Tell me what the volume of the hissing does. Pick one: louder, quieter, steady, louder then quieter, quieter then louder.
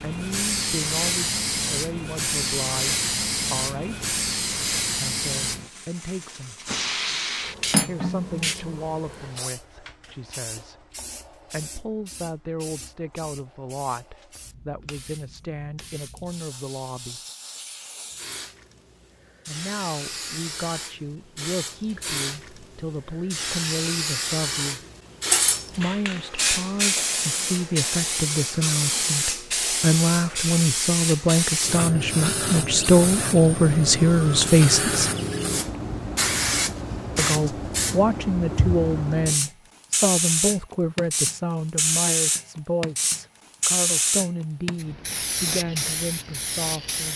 quieter then louder.